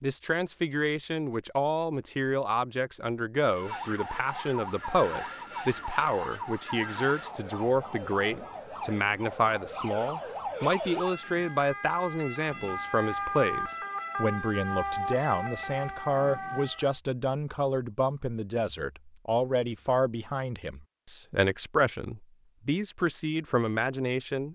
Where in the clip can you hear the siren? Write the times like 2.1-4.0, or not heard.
3.5-16.9.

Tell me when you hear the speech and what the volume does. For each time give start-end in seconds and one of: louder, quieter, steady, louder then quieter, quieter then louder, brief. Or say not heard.
0.0-24.4 steady.